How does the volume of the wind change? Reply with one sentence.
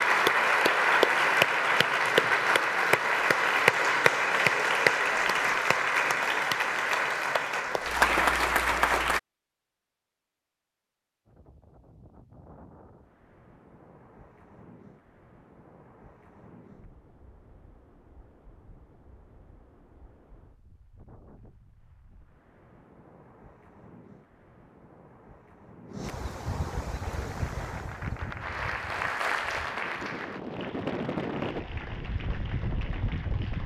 The volume of the wind goes up.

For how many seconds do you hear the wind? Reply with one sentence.
You can hear the wind for 22 seconds altogether.